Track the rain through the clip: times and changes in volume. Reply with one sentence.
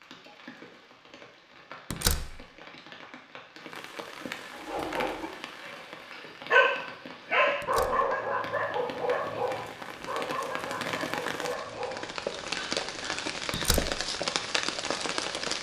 You can hear the rain from 0.0 to 15.5 s, getting louder.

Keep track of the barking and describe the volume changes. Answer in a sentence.
The loudness of the barking goes up, then down.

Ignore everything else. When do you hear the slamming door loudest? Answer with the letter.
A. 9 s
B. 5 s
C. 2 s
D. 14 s
C.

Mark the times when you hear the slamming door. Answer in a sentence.
You can hear the slamming door from 1.9 to 2.5 s, from 7.6 to 8.1 s and from 13.5 to 13.9 s.